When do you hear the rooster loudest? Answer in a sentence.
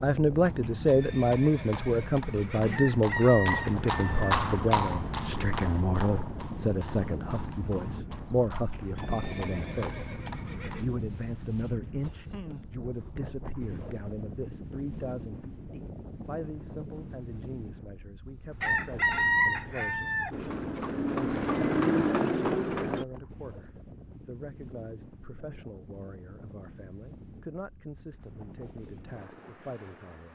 The loudest moment of the rooster is at 19 seconds.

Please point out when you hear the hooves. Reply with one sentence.
You can hear the hooves from 0.5 to 10.9 s and from 20.3 to 23.1 s.